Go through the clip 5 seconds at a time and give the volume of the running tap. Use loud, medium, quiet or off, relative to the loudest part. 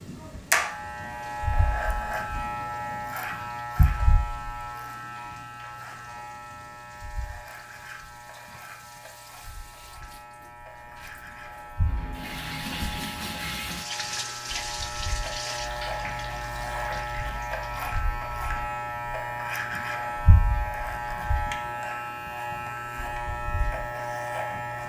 quiet, quiet, loud, loud, off.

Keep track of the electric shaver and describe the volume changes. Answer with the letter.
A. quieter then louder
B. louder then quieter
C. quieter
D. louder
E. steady
A.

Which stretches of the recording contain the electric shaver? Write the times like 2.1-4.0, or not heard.
0.0-24.8.